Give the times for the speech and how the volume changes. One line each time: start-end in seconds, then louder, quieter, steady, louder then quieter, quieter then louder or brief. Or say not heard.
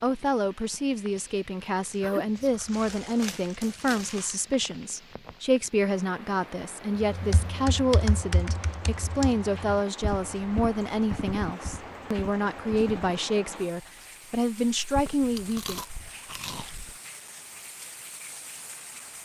0.0-15.8 steady.